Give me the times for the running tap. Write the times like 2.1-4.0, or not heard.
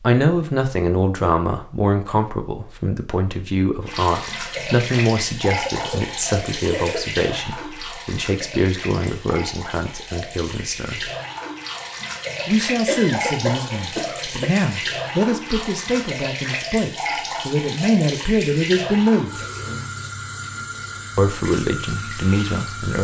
3.8-22.9.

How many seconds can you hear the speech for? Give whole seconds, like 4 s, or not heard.
20 s.